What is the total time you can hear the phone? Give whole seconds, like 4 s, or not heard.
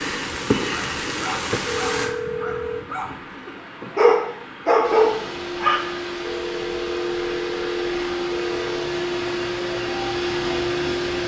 4 s.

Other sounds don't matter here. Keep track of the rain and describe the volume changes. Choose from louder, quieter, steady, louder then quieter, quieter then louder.
quieter.